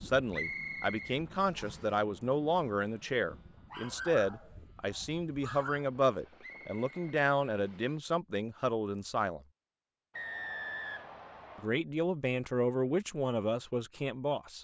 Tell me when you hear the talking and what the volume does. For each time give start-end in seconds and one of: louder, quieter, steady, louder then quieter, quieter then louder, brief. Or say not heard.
0.0-9.4 steady
11.6-14.5 brief.